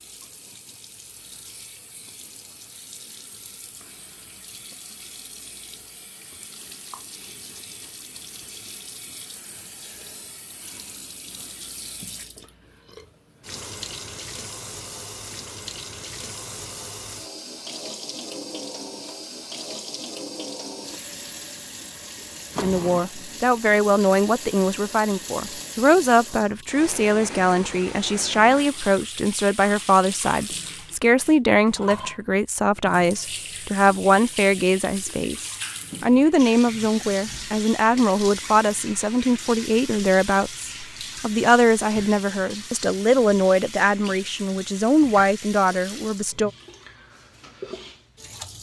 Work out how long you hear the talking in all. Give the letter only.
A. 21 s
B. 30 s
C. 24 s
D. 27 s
C.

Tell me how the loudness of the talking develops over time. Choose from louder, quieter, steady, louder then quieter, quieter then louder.
steady.